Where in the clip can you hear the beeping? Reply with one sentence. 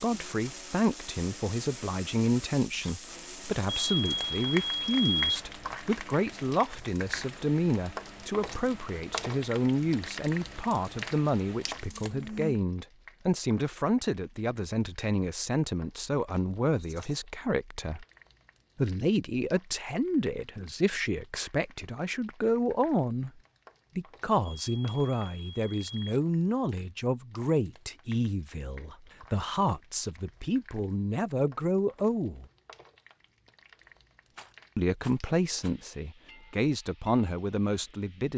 The beeping can be heard from 3.6 to 5.5 s and from 24.4 to 26.2 s.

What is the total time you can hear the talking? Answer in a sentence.
You can hear the talking for 35 seconds altogether.